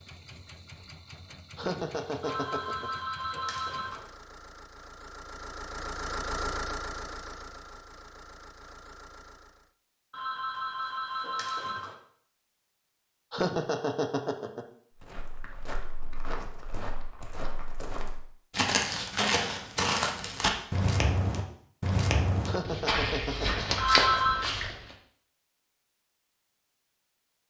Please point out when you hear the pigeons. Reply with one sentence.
The pigeons can't be heard in this clip.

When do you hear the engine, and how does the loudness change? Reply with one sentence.
You can hear the engine from 0.0 to 9.7 s, getting louder then quieter.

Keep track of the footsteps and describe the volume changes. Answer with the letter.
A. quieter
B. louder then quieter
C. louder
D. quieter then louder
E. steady
C.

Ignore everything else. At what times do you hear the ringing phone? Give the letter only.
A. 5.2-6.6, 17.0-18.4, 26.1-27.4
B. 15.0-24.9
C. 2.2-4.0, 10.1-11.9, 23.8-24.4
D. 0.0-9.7
C.